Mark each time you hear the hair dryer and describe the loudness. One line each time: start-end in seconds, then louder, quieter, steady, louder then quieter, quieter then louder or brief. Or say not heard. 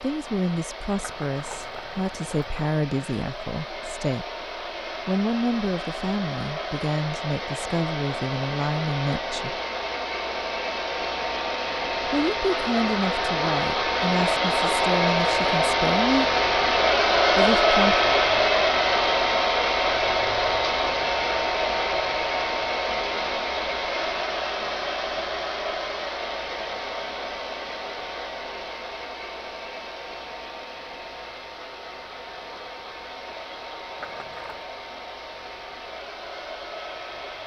0.0-37.4 louder then quieter.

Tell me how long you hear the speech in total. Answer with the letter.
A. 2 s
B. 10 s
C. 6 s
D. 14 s
D.